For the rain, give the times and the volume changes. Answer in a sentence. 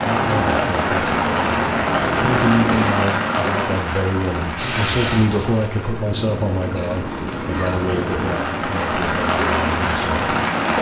The rain can be heard from 0.0 to 10.7 s, getting quieter then louder.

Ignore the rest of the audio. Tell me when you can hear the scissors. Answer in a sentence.
The scissors can be heard from 2.0 to 3.0 s and from 6.0 to 8.4 s.